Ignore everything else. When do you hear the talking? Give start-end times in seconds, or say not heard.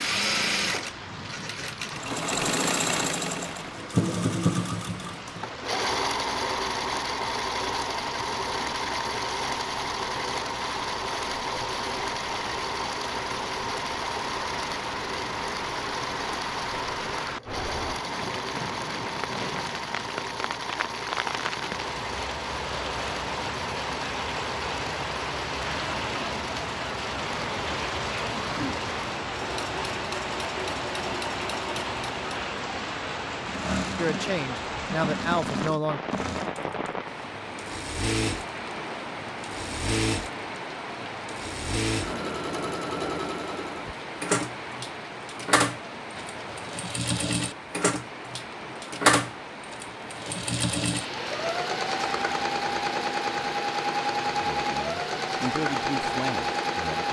34.0-36.0, 54.4-57.0.